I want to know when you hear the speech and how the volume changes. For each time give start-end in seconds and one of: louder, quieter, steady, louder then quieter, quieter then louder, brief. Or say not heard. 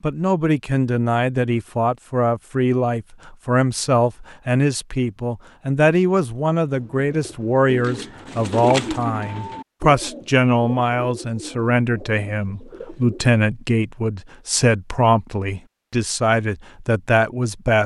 0.0-17.8 steady.